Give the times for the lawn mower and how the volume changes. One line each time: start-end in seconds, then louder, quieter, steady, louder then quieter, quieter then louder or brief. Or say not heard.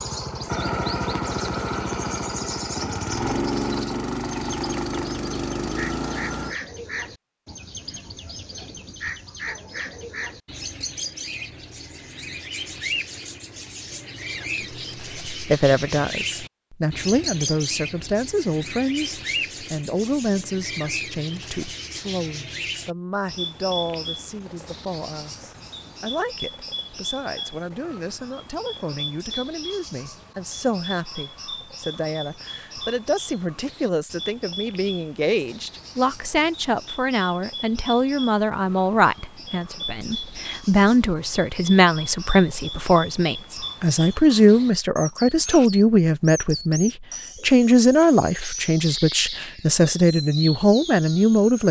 0.0-6.5 steady.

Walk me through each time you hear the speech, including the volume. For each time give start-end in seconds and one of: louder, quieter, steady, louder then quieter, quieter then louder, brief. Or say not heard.
14.6-51.6 quieter then louder.